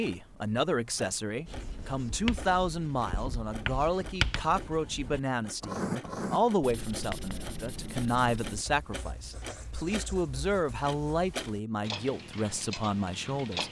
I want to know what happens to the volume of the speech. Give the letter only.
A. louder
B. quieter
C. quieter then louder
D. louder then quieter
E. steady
E.